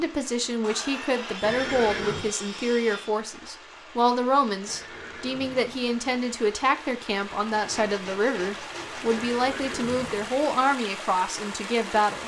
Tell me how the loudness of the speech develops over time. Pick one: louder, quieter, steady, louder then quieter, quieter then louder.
steady.